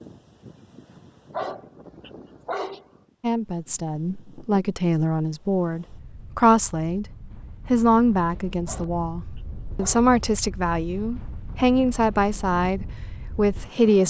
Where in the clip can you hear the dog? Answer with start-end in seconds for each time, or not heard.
1.3-2.9, 8.7-10.1.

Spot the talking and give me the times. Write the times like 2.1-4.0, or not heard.
3.2-7.0, 7.7-14.0.